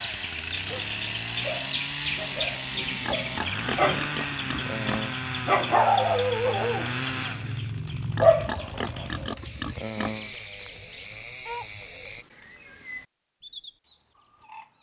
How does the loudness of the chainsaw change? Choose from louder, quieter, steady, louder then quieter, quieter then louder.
quieter.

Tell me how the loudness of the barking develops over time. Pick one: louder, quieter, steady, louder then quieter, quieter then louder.
louder then quieter.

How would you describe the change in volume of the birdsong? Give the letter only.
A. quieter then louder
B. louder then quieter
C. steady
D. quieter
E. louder
D.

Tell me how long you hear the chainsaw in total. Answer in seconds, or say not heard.
12 s.